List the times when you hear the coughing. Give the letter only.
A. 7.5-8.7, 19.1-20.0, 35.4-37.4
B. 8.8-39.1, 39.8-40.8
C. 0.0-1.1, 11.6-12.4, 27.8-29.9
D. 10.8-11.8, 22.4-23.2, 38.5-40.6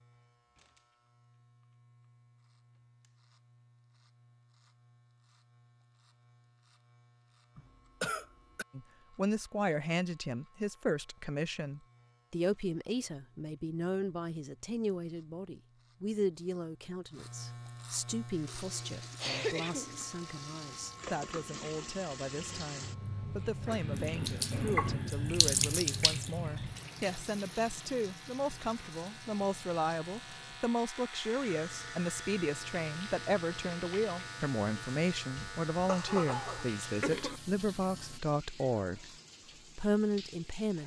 A.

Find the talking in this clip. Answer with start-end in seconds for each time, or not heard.
8.8-39.1, 39.8-40.8.